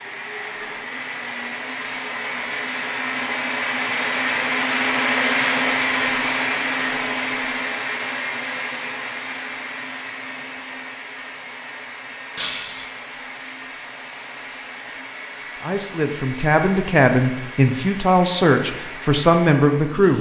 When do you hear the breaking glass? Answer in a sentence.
You can hear the breaking glass from 12.3 to 12.8 s.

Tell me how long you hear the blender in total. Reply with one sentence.
You can hear the blender for 20 seconds altogether.